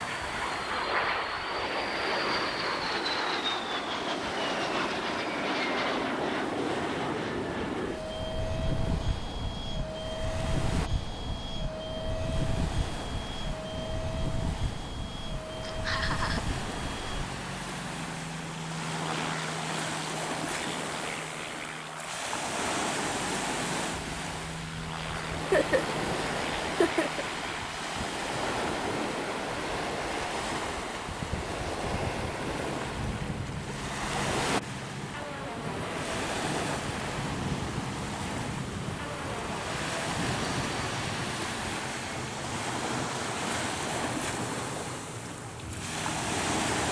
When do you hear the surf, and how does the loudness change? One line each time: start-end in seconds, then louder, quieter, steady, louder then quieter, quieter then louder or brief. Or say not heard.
0.0-46.8 louder.